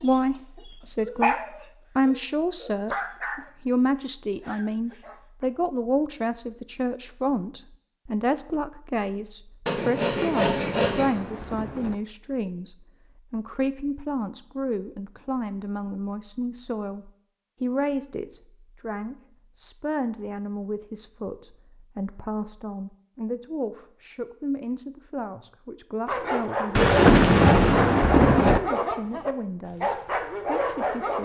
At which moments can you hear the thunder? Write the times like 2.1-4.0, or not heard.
10.3-11.9, 26.8-28.6.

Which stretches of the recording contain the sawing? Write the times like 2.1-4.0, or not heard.
9.7-11.2.